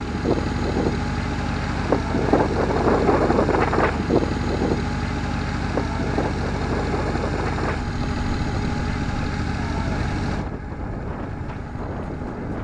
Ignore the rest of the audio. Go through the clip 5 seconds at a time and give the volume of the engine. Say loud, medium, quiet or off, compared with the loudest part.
loud, loud, medium.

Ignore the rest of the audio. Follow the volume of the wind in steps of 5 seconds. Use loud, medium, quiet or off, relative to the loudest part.
loud, medium, medium.